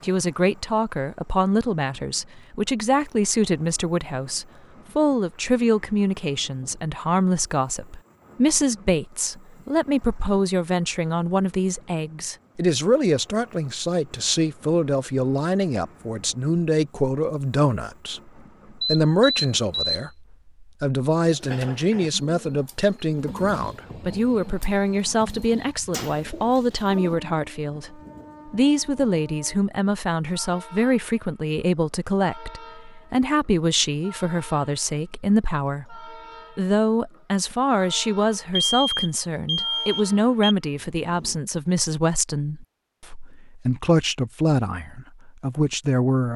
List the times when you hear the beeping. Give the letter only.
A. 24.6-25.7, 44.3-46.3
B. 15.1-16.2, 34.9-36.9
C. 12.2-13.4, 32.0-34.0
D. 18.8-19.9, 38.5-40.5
D.